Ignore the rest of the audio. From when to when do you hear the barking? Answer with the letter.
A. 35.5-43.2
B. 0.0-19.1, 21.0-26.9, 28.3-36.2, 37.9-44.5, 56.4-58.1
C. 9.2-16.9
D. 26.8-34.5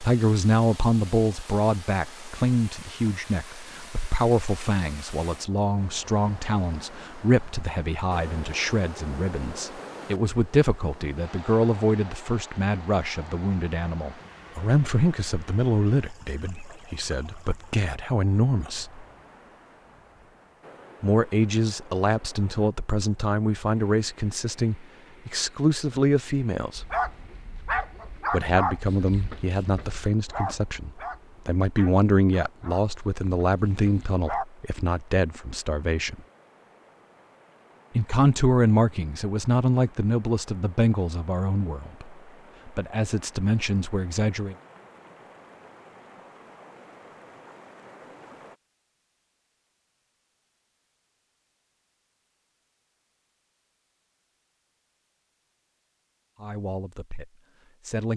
D.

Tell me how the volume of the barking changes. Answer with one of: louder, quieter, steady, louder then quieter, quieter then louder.
quieter.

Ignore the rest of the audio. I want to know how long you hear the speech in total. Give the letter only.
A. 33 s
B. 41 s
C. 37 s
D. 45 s
B.